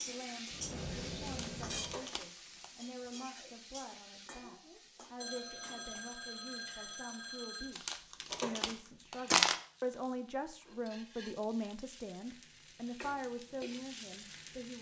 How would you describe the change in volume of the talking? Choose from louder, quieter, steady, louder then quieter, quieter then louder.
louder.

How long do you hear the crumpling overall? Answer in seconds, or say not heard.
3 s.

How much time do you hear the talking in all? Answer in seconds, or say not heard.
15 s.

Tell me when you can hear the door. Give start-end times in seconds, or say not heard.
not heard.